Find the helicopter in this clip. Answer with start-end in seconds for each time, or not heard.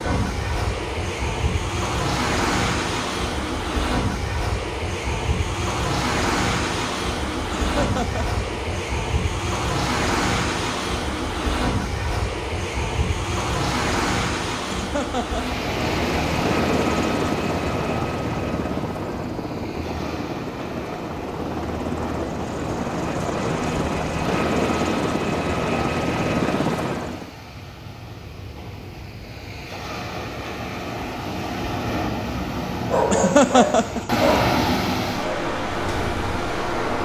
15.7-27.3.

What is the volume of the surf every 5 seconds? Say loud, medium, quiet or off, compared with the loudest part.
loud, loud, loud, medium, medium, quiet, loud, loud.